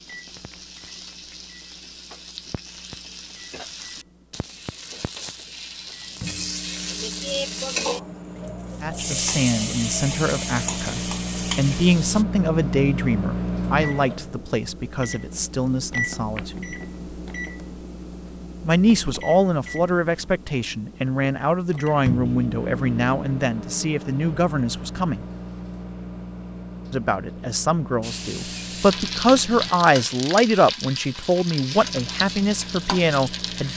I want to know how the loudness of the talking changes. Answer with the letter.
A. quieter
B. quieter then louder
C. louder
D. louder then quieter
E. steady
E.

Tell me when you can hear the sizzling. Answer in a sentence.
You can hear the sizzling from 0.0 to 12.2 s and from 28.0 to 33.7 s.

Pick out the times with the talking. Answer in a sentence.
The talking can be heard from 8.8 to 16.7 s, from 18.6 to 25.2 s and from 26.9 to 33.7 s.